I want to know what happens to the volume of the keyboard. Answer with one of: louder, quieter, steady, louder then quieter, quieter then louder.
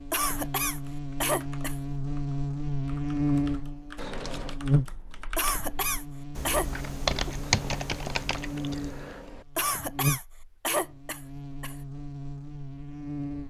louder.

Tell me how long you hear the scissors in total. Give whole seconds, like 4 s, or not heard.
3 s.